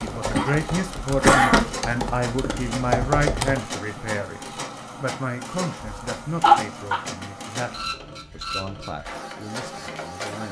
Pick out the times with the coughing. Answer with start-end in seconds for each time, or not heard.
0.3-1.6, 5.8-7.0.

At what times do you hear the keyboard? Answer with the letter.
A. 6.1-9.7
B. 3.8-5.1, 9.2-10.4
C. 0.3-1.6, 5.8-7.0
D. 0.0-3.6
D.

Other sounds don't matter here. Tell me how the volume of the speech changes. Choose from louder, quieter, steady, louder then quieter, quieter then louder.
quieter.